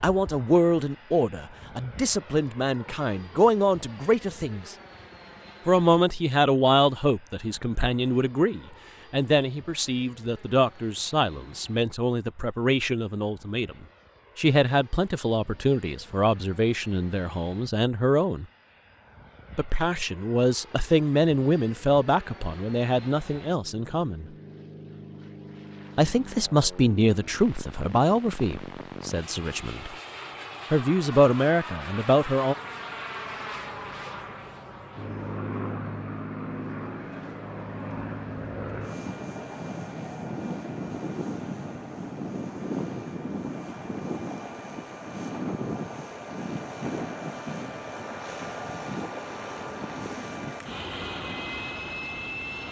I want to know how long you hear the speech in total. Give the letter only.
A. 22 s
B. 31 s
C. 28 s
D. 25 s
C.